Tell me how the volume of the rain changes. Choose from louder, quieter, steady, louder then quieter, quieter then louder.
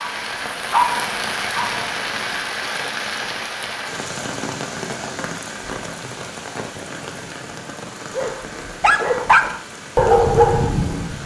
quieter.